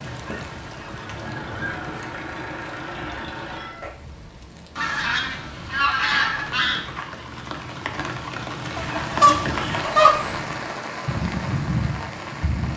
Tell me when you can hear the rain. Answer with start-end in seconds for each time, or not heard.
0.0-12.7.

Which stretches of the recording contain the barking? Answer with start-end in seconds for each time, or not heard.
not heard.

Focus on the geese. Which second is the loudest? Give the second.
10 s.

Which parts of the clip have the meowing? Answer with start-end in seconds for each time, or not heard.
2.9-4.5.